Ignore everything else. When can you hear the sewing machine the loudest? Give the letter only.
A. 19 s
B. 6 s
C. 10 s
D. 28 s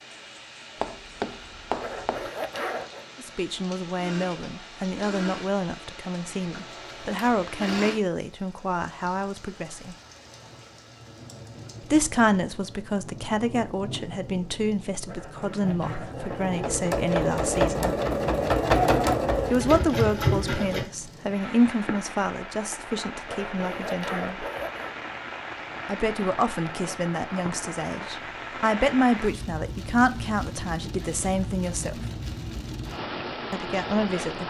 A.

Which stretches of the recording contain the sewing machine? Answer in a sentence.
You can hear the sewing machine from 4.0 to 8.0 s and from 16.1 to 20.9 s.